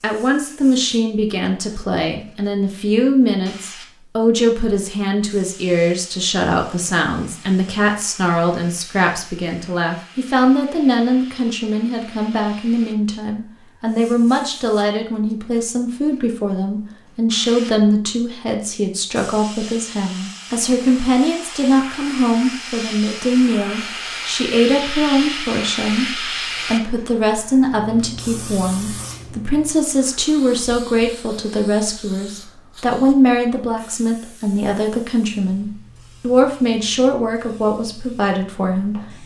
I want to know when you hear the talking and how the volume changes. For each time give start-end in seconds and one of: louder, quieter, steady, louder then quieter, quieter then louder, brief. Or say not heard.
0.0-39.2 steady.